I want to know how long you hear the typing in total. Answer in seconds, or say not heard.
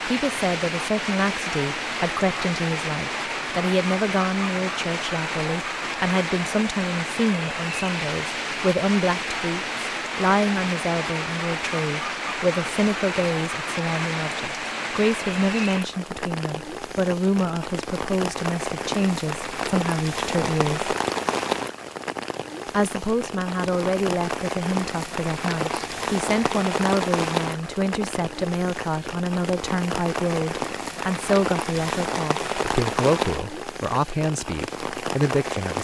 not heard.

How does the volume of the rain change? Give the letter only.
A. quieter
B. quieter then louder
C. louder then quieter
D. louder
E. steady
E.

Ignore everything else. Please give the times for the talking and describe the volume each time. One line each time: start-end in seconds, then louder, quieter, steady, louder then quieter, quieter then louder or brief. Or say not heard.
0.1-20.9 steady
22.7-35.7 steady.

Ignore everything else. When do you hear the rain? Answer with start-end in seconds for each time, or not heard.
0.0-35.7.